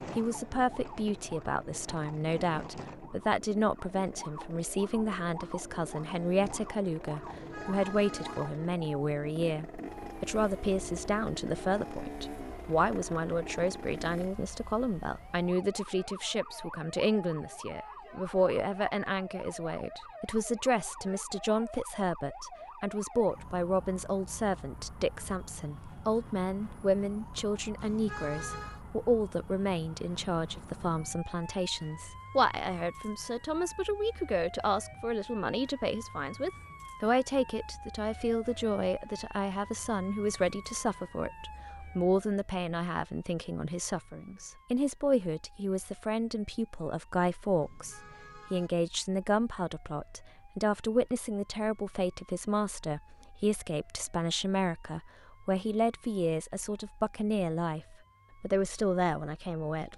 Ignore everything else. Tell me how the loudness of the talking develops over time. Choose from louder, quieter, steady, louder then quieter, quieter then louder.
steady.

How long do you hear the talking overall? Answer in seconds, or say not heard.
60 s.